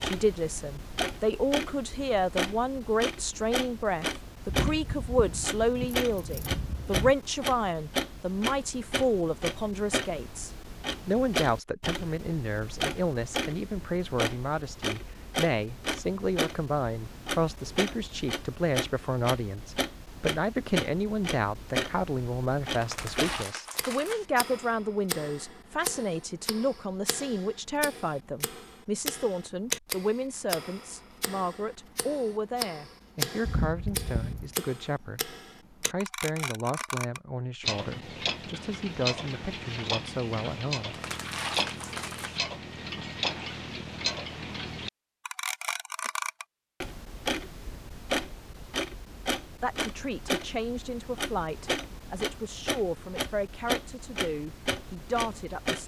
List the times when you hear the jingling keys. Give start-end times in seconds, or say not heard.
4.5-7.2, 33.4-34.5.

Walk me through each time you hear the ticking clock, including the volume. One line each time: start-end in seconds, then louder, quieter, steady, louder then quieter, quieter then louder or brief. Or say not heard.
0.0-55.8 steady.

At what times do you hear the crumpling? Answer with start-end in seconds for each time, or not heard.
22.8-24.2, 40.9-42.4.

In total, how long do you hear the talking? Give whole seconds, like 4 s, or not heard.
47 s.